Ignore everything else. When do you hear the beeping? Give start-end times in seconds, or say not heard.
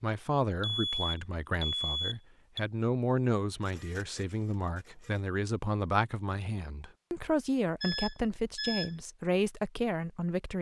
0.6-2.6, 7.8-8.9.